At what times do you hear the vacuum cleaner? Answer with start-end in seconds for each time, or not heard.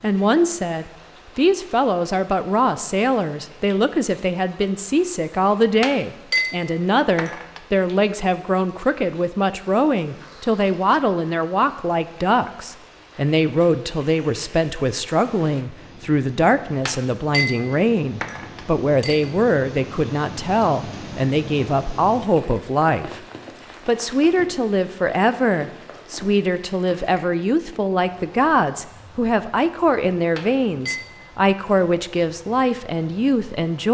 not heard.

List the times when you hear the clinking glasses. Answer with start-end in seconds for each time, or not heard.
5.8-7.6, 16.9-19.2, 30.4-31.1.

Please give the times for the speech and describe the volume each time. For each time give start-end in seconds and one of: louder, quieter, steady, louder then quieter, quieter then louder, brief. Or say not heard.
0.0-23.2 steady
23.9-33.8 steady.